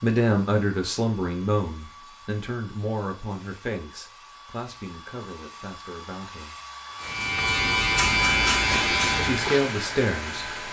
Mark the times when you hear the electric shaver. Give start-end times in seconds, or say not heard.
7.0-10.6.